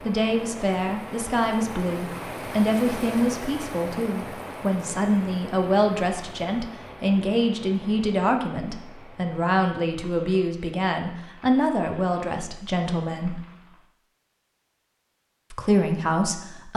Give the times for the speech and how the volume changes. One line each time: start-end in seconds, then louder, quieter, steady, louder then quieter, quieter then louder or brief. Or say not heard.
0.0-13.4 steady
15.5-16.7 brief.